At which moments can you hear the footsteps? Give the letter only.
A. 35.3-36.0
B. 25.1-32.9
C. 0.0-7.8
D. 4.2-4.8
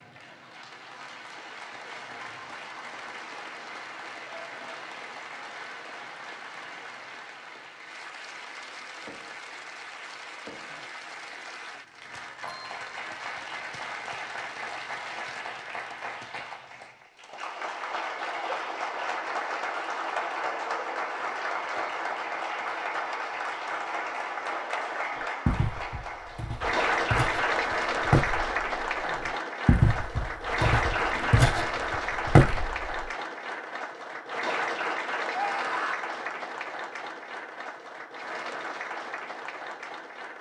B.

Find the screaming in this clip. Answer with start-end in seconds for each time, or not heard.
35.3-36.0.